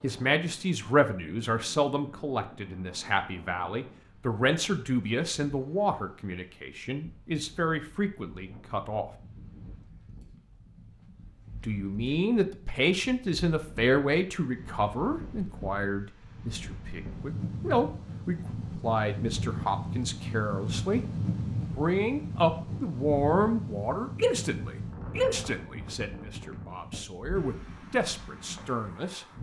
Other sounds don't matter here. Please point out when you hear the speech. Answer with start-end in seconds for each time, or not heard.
0.0-9.1, 11.6-21.0, 21.8-29.2.